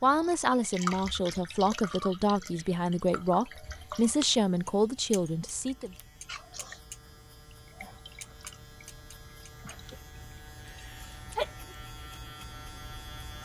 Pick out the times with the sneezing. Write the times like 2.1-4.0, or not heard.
10.7-11.8.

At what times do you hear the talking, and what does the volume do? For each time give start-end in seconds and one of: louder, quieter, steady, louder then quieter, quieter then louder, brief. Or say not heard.
0.0-6.0 steady.